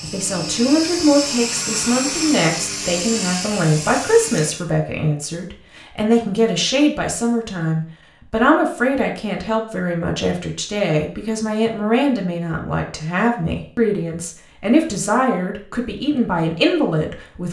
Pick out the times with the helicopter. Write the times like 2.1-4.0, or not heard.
0.0-4.7.